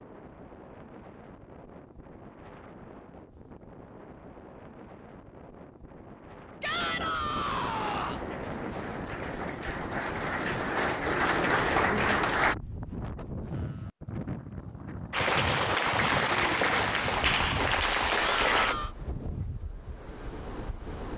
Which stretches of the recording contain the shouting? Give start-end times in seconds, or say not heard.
6.6-8.2, 18.1-18.9.